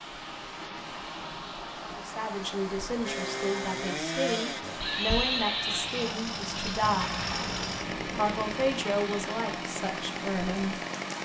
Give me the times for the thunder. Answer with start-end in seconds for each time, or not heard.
6.8-8.8.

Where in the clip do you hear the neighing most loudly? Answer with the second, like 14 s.
5 s.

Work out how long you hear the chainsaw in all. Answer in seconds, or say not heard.
8 s.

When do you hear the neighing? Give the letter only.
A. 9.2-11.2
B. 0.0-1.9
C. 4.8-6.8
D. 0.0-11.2
C.